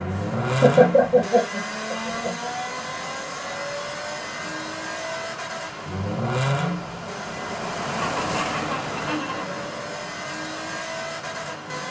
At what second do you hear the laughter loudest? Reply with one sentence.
The volume of the laughter peaks at 1 second.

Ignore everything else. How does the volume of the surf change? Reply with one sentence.
The volume of the surf goes up, then down.